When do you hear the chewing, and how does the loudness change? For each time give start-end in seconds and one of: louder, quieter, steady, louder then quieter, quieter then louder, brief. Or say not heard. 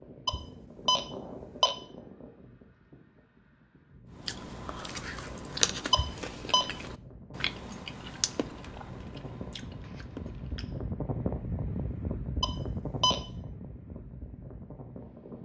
4.1-10.9 quieter.